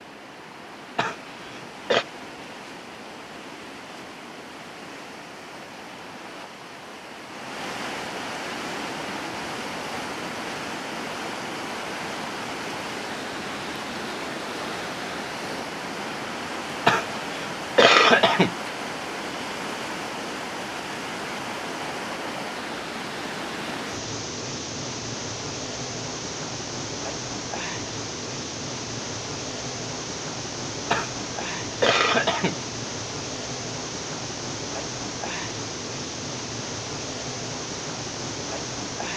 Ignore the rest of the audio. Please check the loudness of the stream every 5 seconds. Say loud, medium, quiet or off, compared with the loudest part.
medium, loud, loud, loud, loud, loud, loud, loud.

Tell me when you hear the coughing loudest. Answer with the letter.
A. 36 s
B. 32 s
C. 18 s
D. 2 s
C.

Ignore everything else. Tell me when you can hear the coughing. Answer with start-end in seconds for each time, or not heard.
0.9-2.0, 16.9-18.5, 30.9-32.5.